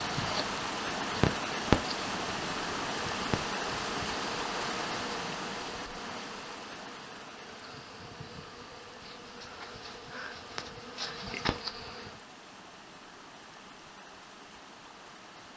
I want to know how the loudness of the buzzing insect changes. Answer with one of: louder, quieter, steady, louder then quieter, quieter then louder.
quieter then louder.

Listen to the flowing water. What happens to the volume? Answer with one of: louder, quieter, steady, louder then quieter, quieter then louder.
quieter.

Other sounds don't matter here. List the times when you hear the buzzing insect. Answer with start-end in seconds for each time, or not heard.
0.0-12.2.